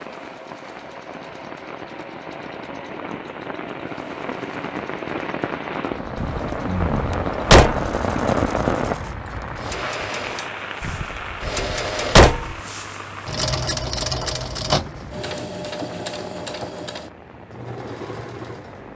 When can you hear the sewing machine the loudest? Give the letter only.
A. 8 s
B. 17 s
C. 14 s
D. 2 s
C.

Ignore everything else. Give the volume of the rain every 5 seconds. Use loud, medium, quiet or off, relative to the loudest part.
medium, loud, medium, quiet.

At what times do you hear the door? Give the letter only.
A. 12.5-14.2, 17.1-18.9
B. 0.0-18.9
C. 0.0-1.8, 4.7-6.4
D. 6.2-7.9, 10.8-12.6
D.